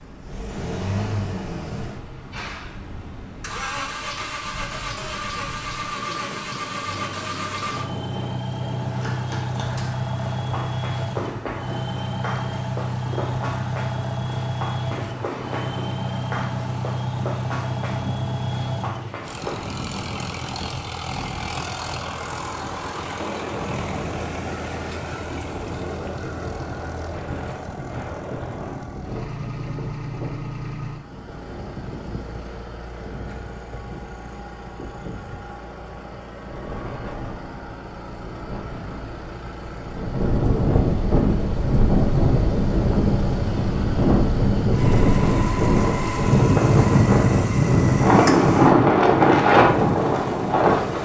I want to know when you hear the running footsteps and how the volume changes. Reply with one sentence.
The running footsteps can be heard from 8.8 to 19.6 s, at a steady volume.